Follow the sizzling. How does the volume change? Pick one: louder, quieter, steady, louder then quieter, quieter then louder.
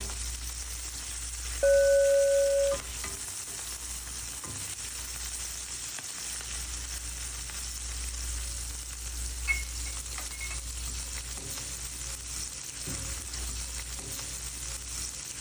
steady.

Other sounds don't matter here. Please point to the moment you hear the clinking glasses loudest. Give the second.
2 s.